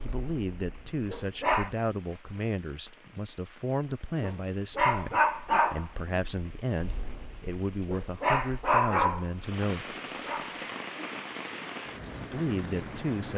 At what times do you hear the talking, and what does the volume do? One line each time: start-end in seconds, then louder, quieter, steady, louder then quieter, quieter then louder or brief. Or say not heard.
0.0-9.9 steady
12.3-13.3 brief.